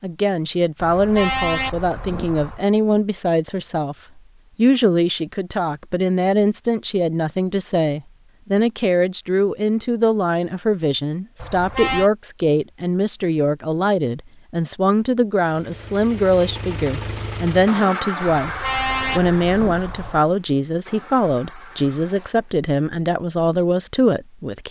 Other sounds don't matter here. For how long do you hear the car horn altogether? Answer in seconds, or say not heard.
4 s.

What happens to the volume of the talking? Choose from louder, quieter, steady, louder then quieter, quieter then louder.
steady.